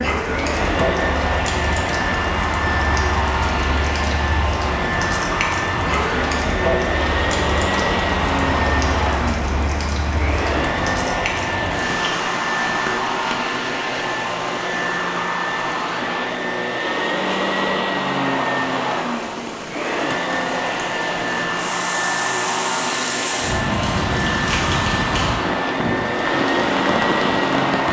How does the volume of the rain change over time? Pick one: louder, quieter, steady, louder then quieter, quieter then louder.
quieter then louder.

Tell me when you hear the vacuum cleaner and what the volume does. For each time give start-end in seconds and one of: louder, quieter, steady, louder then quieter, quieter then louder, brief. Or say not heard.
0.2-27.8 steady.